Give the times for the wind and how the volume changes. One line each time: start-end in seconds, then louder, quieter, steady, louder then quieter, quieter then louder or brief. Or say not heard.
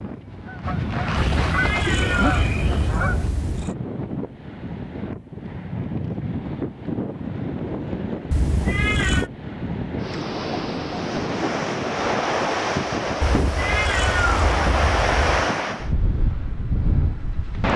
0.0-17.7 louder.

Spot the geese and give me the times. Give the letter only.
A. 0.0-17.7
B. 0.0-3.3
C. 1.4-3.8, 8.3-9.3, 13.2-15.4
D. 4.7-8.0
B.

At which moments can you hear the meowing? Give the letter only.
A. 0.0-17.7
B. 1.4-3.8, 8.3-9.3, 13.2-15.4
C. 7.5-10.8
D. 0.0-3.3
B.